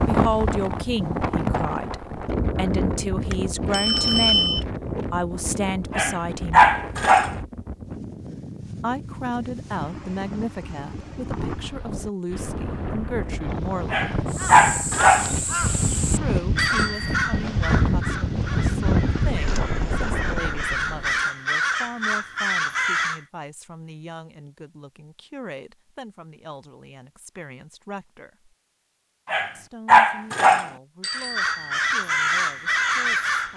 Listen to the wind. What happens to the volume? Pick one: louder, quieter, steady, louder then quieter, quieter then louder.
quieter then louder.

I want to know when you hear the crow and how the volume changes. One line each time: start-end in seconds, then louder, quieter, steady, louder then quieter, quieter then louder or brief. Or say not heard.
14.2-23.2 quieter then louder
31.0-33.5 brief.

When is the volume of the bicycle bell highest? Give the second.
4 s.